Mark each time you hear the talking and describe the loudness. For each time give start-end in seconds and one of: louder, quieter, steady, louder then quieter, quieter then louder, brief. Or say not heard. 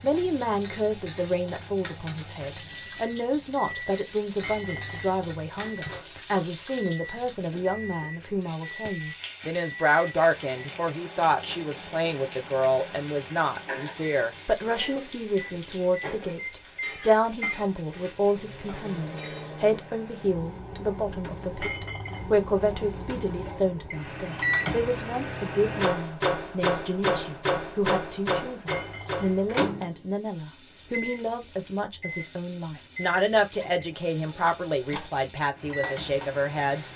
0.0-36.9 steady.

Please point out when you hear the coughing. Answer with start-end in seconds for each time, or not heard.
14.7-15.2.